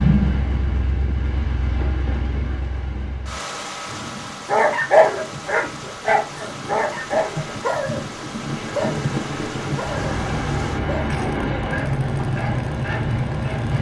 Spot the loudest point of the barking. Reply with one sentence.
The loudest moment of the barking is at 5 seconds.